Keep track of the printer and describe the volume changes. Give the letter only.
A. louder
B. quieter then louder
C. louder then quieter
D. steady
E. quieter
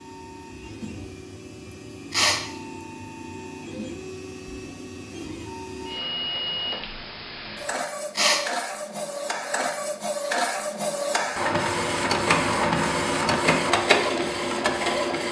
A.